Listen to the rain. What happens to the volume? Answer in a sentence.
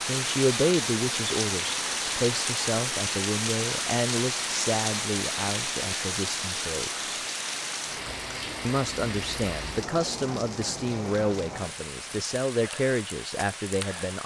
The volume of the rain goes down.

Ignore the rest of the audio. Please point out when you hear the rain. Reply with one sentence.
The rain can be heard from 0.0 to 14.2 s.